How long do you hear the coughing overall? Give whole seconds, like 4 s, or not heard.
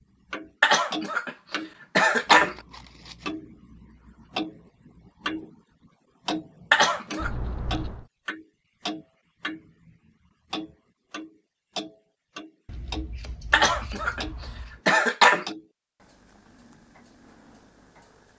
3 s.